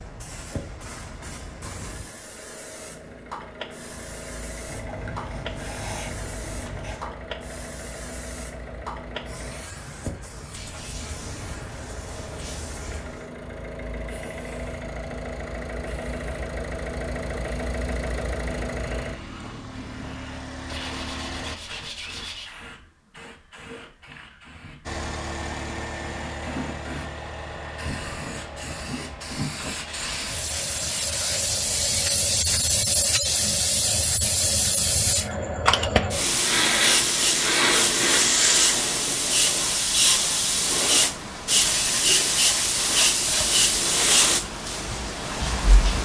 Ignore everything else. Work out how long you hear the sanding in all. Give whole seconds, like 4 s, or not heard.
11 s.